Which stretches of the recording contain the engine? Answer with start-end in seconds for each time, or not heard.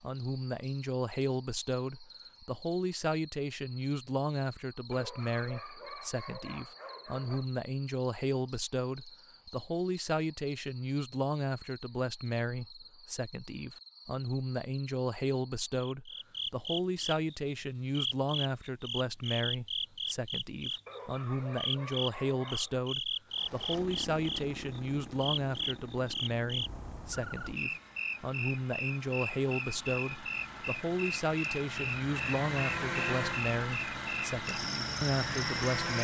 23.3-35.9.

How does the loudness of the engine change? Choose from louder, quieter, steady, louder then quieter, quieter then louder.
quieter then louder.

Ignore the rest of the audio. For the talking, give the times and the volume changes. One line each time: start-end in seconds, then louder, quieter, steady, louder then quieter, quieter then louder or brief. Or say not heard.
0.0-35.9 steady.